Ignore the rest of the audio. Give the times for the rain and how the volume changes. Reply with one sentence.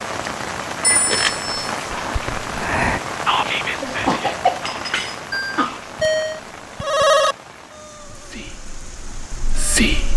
You can hear the rain from 0.0 to 10.1 s, getting quieter.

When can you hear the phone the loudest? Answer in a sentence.
The loudest moment of the phone is at 7 seconds.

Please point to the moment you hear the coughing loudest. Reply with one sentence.
The volume of the coughing peaks at 4 seconds.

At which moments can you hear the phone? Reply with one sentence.
You can hear the phone from 0.8 to 1.7 s and from 5.3 to 7.3 s.